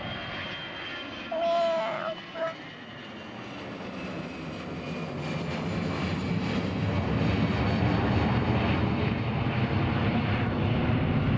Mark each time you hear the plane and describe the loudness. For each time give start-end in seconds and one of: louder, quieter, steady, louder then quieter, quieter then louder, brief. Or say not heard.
0.0-11.3 louder.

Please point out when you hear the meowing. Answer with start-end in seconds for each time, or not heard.
1.3-2.5.